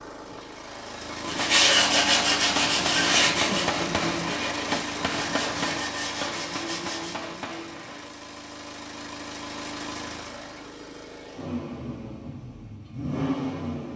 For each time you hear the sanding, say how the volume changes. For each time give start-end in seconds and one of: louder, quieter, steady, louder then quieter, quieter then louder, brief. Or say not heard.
1.2-7.2 quieter.